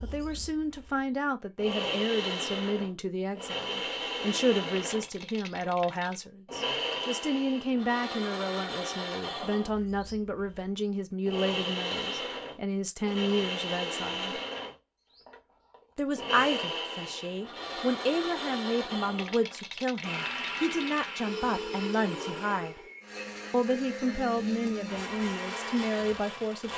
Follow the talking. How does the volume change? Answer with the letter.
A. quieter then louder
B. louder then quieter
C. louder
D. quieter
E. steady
E.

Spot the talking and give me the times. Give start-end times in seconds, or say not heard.
0.0-14.4, 15.9-22.8, 23.5-26.7.